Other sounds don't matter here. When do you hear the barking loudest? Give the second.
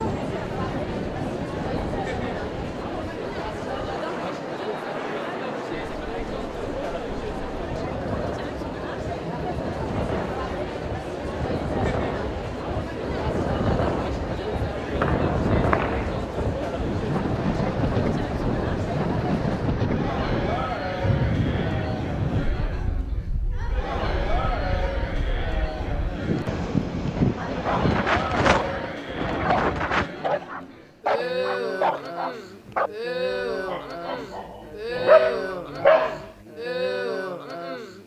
35 s.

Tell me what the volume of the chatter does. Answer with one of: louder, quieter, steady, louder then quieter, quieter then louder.
steady.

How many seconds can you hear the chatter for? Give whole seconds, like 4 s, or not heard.
38 s.